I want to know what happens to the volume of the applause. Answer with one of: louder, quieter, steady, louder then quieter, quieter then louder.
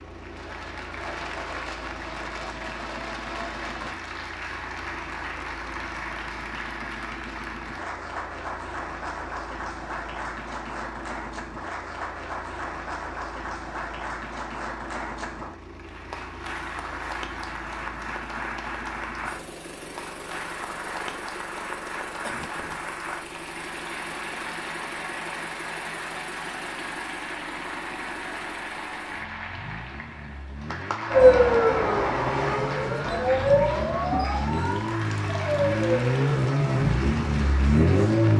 steady.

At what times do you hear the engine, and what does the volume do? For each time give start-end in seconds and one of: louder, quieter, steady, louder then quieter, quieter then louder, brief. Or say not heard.
0.0-38.3 louder.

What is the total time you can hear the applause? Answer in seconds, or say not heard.
38 s.